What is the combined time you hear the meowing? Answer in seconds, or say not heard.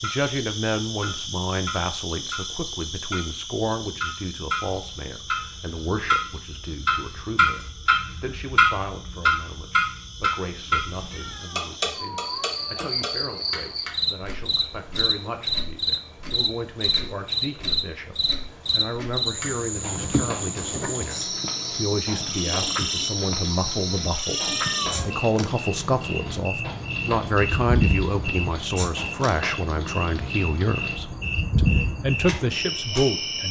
3 s.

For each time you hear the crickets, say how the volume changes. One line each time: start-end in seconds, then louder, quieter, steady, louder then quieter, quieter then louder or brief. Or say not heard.
0.0-33.4 louder.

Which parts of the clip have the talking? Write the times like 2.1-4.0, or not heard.
0.0-33.4.